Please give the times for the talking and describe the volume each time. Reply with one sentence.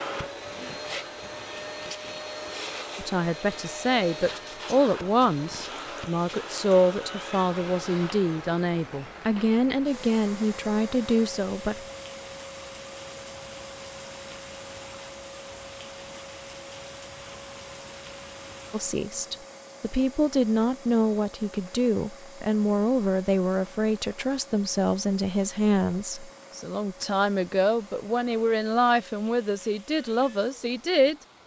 The talking can be heard from 3.0 to 11.8 s, at a steady volume; and from 18.7 to 31.1 s, at a steady volume.